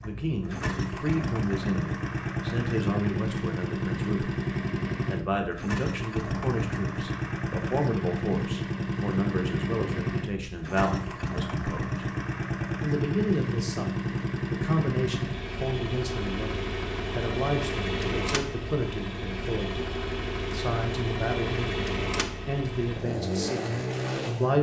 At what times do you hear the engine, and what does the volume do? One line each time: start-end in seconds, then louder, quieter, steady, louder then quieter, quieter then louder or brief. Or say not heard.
0.0-24.5 steady.